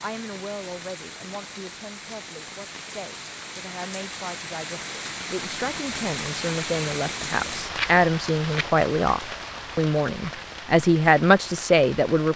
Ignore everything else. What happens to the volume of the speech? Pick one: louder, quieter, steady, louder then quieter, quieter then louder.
louder.